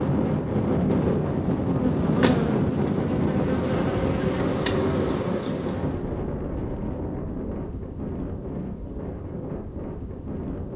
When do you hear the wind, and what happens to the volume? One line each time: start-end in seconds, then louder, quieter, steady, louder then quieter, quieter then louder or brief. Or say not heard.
0.0-10.7 quieter.